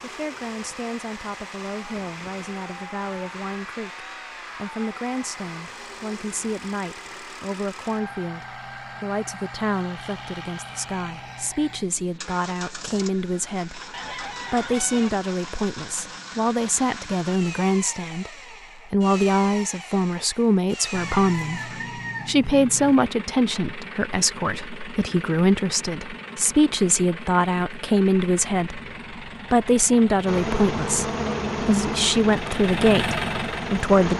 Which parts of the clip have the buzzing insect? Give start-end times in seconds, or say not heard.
30.2-34.1.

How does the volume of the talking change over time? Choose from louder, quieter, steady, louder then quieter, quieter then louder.
louder.